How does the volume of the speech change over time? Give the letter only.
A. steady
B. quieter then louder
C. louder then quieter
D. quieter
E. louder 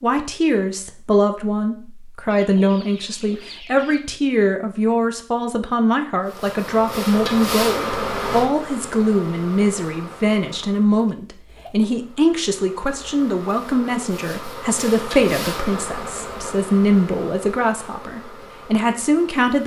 A.